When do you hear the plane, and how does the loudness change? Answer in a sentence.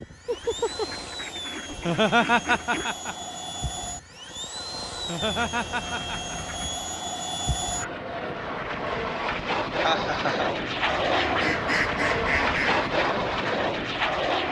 You can hear the plane from 0.0 to 14.4 s, getting louder.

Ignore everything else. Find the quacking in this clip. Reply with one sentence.
You can hear the quacking from 0.2 to 3.0 s, from 5.2 to 7.0 s and from 10.8 to 12.9 s.